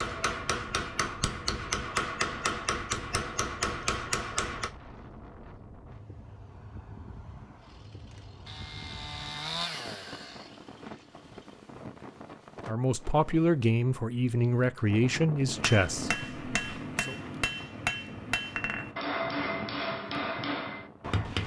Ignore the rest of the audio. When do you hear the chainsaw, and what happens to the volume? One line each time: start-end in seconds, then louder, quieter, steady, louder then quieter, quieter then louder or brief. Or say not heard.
7.6-11.6 louder then quieter.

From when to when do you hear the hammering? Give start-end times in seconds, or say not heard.
0.0-4.7, 15.4-21.4.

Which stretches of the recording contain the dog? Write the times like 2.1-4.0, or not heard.
not heard.